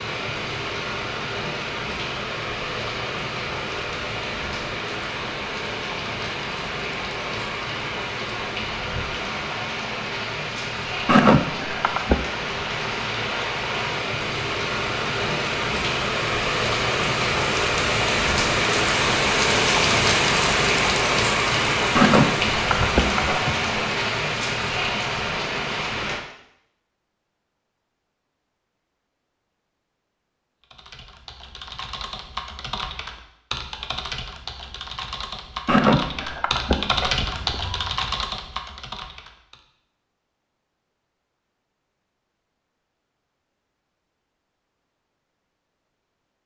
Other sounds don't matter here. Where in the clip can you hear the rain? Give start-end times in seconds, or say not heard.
0.0-26.2.